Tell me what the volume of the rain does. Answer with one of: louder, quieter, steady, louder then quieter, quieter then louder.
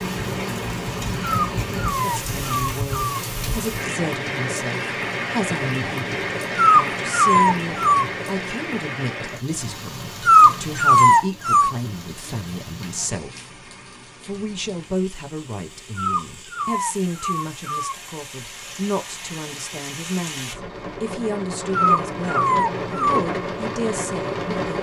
quieter then louder.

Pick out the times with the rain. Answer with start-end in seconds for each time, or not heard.
0.0-24.7.